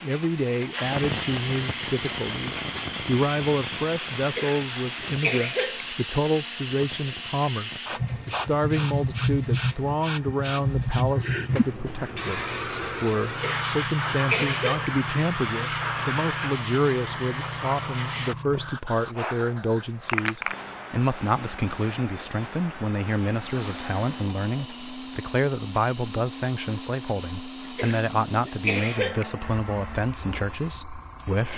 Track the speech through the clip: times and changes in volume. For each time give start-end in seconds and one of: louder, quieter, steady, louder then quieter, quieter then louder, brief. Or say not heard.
0.0-31.5 steady.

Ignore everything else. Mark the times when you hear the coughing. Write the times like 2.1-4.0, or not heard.
4.2-5.8, 13.2-14.9, 27.6-29.2.